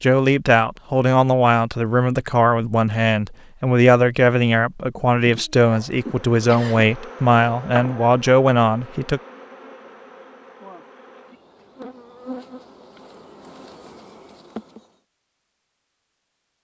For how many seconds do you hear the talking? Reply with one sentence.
The talking can be heard for 9 seconds in total.